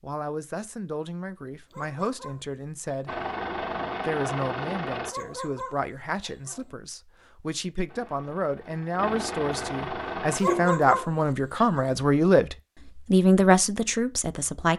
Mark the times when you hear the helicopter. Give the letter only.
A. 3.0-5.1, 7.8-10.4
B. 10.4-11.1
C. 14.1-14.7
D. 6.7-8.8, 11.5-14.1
A.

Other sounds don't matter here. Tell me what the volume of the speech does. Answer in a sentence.
The loudness of the speech goes up.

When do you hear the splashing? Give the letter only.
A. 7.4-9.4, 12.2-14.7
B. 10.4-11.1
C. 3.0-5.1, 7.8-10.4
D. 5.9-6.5
B.